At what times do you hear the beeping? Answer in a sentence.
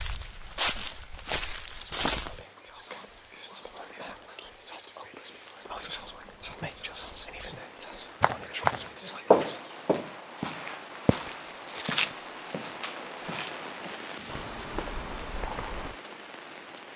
The beeping can't be heard in this clip.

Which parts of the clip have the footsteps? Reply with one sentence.
You can hear the footsteps from 0.0 to 2.4 s and from 8.2 to 15.9 s.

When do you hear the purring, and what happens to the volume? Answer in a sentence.
You can't hear the purring here.